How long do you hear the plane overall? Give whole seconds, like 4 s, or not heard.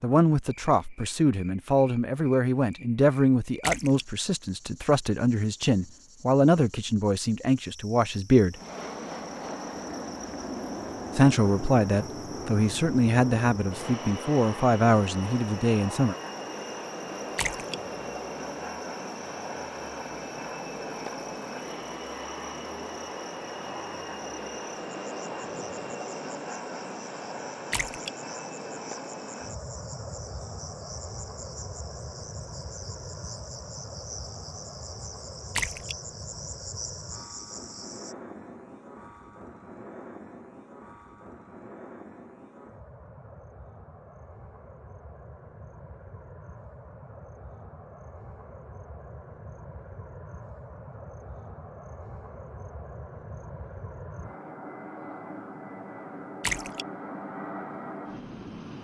50 s.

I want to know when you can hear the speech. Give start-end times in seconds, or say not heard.
0.0-8.6, 11.2-16.1.